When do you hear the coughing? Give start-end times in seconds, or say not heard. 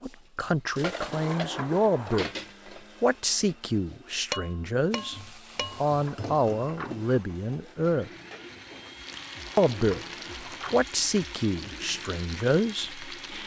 not heard.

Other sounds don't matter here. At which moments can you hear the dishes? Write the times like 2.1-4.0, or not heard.
0.1-8.9.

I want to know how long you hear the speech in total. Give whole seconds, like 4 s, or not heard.
10 s.